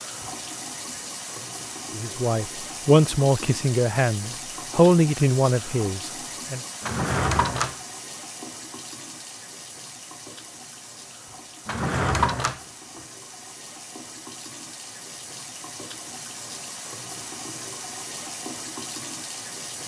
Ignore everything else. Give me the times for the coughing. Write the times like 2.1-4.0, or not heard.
not heard.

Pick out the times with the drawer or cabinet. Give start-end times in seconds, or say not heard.
6.8-7.8, 11.7-13.0.